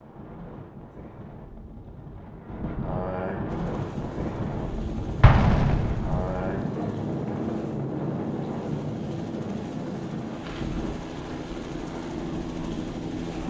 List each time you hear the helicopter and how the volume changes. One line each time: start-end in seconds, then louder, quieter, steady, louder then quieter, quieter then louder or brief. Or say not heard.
3.5-13.4 louder.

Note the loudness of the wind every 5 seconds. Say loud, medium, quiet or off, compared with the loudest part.
loud, loud, medium.